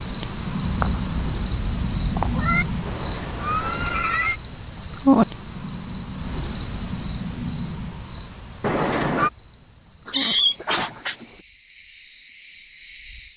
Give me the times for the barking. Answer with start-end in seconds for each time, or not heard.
not heard.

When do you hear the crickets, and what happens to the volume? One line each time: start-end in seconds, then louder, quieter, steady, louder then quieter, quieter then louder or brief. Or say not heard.
0.0-13.3 quieter.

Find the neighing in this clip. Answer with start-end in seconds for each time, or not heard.
2.9-4.4, 8.6-9.3.